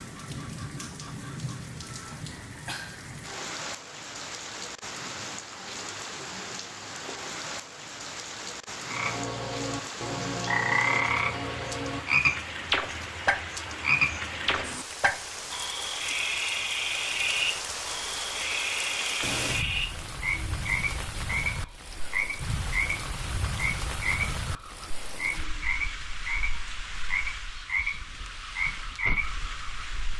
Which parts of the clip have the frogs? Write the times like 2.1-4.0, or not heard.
8.8-29.9.